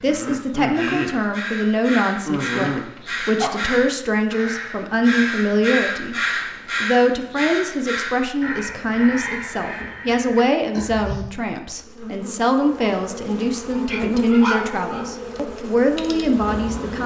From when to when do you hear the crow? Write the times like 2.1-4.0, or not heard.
0.7-11.2.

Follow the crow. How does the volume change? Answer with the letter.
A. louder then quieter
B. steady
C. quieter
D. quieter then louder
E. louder
A.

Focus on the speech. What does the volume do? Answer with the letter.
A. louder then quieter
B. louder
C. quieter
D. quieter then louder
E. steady
E.